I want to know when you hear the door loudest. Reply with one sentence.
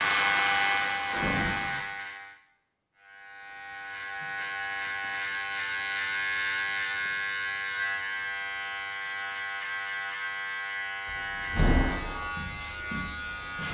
The volume of the door peaks at 12 seconds.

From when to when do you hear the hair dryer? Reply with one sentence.
You can hear the hair dryer from 0.0 to 1.9 s.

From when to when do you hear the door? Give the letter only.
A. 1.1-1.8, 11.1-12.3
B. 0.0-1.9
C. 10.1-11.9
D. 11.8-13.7
A.